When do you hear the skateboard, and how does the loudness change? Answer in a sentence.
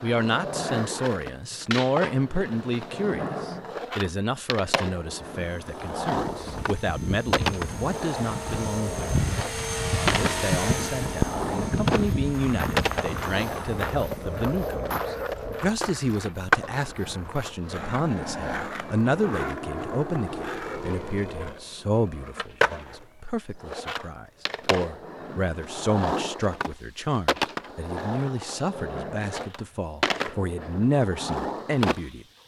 The skateboard can be heard from 0.0 to 32.4 s, at a steady volume.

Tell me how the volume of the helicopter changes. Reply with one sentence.
The loudness of the helicopter goes up, then down.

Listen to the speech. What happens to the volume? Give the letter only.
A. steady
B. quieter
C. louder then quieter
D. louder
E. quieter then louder
A.